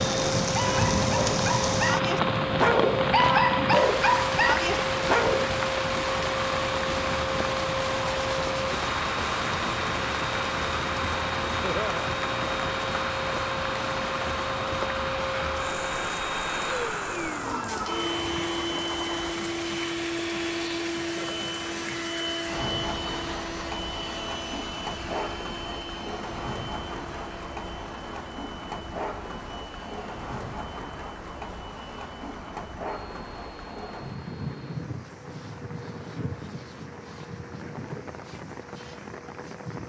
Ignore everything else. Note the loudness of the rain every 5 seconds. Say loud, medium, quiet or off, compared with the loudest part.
loud, loud, medium, medium, medium, medium, medium, quiet.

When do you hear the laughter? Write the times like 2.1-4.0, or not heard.
11.6-12.1, 21.1-21.6.